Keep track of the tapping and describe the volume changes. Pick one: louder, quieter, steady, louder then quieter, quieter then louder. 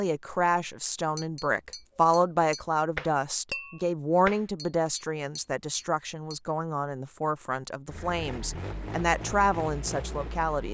louder then quieter.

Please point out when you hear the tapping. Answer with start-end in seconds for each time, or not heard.
1.1-6.4.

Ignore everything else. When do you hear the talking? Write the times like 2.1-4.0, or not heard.
0.0-10.6.